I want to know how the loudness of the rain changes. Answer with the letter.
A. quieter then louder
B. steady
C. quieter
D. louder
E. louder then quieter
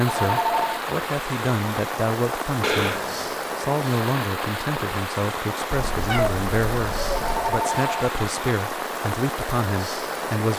B.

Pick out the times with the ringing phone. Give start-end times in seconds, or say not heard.
0.0-0.8, 7.1-8.2.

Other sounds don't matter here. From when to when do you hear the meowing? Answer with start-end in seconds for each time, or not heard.
2.6-3.4, 5.7-7.5.